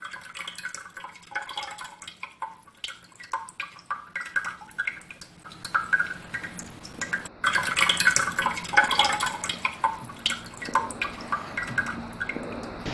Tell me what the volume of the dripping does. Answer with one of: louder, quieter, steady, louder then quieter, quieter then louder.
louder then quieter.